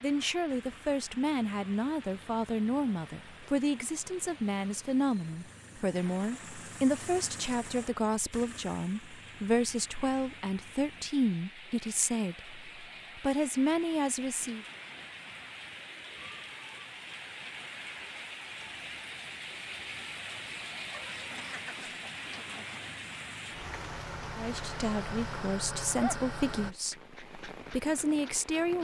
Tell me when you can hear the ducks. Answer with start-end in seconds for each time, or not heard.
20.9-22.8.